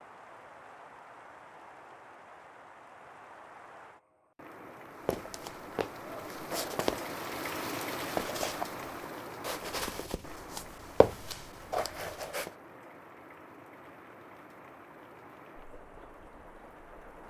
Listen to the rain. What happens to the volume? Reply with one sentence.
The loudness of the rain goes up, then down.